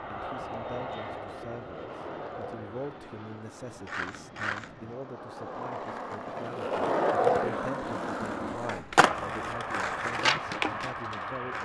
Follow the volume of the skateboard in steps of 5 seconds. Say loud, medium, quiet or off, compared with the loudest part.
medium, loud, loud.